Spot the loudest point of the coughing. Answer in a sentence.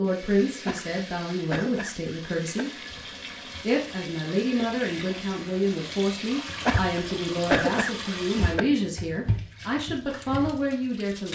The loudest moment of the coughing is at 8 seconds.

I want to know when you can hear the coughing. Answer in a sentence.
The coughing can be heard from 0.7 to 2.6 s and from 6.6 to 8.6 s.